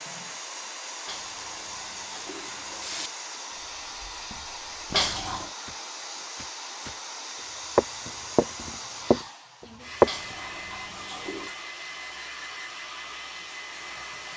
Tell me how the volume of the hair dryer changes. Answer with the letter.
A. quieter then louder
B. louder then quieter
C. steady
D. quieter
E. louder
C.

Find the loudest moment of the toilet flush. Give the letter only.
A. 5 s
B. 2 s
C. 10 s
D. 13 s
A.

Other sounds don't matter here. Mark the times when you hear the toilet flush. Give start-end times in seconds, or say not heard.
1.1-3.1, 4.9-5.5, 10.1-11.6.